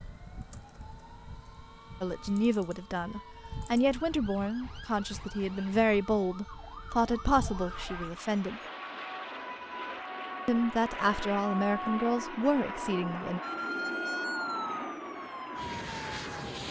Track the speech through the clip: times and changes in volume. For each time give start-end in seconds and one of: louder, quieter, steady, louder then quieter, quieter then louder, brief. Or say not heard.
2.0-8.6 steady
10.4-13.4 brief.